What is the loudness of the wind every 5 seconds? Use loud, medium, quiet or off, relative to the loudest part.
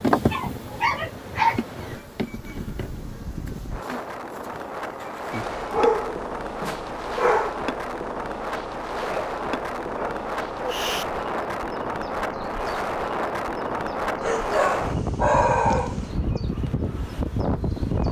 medium, loud, loud, loud.